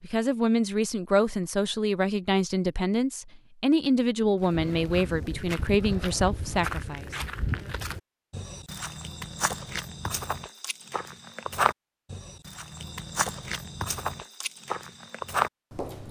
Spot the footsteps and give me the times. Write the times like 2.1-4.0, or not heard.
4.4-16.0.